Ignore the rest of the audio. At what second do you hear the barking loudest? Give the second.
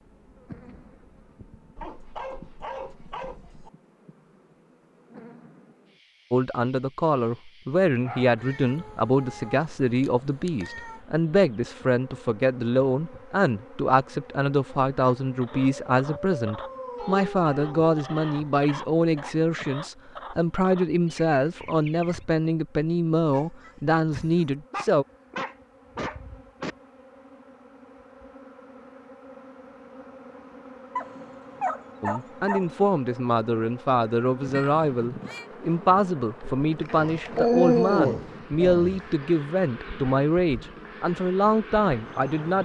38 s.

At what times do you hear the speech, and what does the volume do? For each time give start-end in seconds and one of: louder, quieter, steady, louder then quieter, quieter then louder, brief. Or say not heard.
6.3-25.1 steady
32.0-42.6 steady.